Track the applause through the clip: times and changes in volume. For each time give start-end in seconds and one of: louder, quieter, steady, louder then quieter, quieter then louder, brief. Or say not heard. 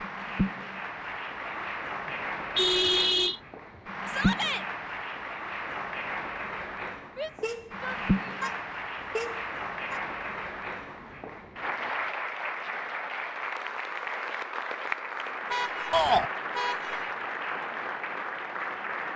0.0-19.1 steady.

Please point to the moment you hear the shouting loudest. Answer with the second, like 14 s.
16 s.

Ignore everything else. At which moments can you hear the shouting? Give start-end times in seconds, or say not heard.
4.0-4.7, 7.2-8.3, 15.9-16.3.